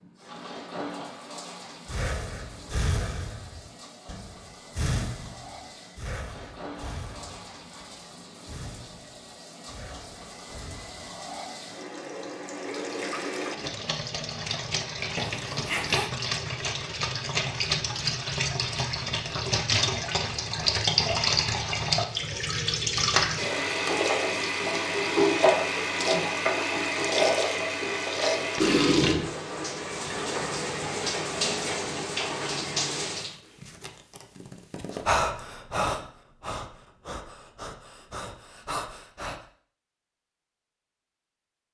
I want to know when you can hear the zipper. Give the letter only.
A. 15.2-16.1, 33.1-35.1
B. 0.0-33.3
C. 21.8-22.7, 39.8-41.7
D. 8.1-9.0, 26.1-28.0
A.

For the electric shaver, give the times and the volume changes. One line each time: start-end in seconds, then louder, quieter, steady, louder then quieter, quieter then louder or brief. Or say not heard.
not heard.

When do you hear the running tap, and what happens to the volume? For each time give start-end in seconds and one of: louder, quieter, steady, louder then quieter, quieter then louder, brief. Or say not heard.
0.0-33.3 louder.